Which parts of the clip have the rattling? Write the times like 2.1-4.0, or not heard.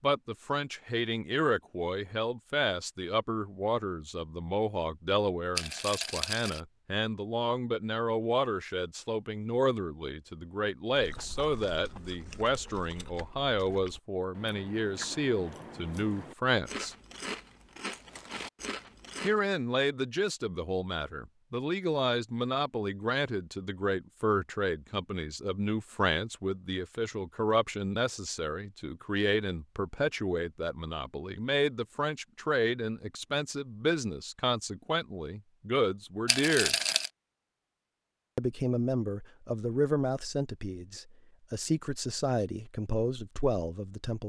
5.5-6.6, 36.2-37.1.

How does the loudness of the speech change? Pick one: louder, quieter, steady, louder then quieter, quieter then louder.
steady.